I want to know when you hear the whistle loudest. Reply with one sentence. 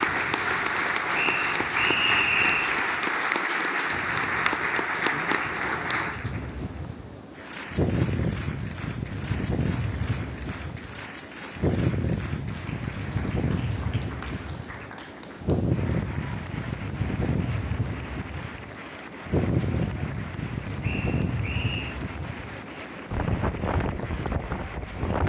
The loudest moment of the whistle is at 2 seconds.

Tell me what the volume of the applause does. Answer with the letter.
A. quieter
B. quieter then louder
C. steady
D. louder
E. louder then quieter
A.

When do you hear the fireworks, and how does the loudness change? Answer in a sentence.
The fireworks can't be heard in this clip.